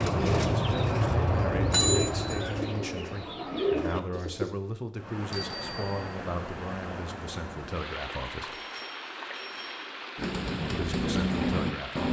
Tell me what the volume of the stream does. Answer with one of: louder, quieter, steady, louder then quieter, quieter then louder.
steady.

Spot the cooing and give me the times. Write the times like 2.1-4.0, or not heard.
0.0-4.5, 10.2-12.0.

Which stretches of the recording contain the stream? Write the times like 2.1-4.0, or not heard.
5.0-12.0.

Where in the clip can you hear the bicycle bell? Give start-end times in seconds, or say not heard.
1.7-2.4, 5.3-6.2, 8.4-9.8.